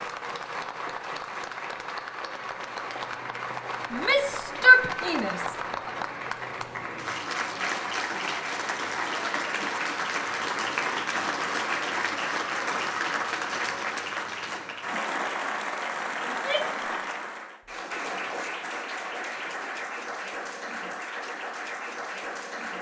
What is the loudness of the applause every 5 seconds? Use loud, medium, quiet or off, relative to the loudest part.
medium, loud, loud, loud, medium.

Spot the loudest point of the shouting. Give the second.
5 s.